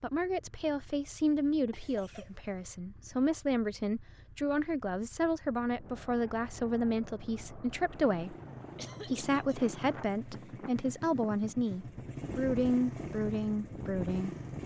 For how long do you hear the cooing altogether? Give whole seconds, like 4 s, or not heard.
not heard.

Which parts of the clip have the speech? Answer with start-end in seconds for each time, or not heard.
0.0-8.3, 9.1-14.3.